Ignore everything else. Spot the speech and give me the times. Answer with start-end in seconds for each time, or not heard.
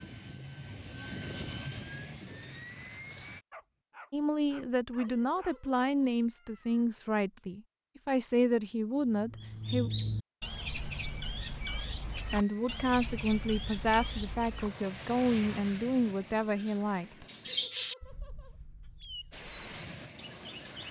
4.1-9.9, 12.3-17.2.